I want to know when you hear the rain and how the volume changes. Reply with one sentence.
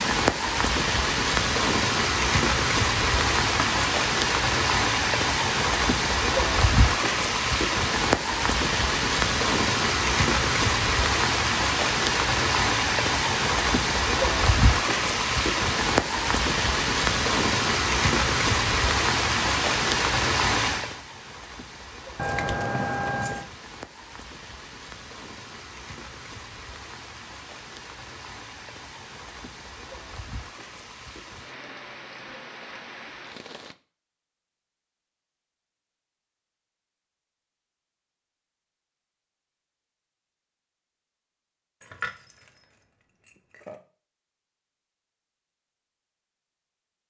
You can hear the rain from 0.0 to 33.8 s, getting quieter.